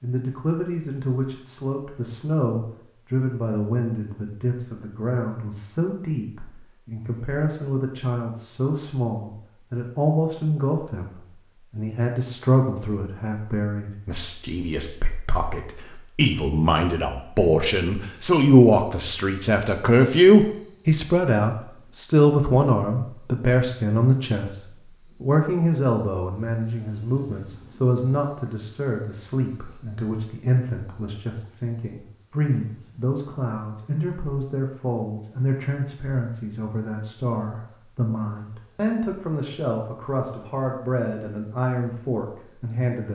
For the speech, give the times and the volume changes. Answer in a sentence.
The speech can be heard from 0.0 to 43.0 s, getting louder then quieter.